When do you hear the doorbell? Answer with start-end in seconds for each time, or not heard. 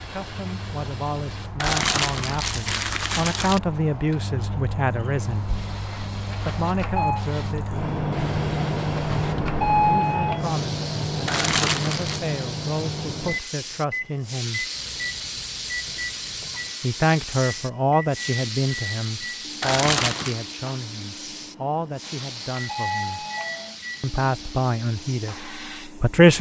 6.3-7.2, 8.9-10.5, 22.0-23.8.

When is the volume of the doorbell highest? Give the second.
10 s.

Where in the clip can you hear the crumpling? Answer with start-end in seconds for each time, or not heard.
1.6-3.6, 11.2-12.2, 19.6-20.4.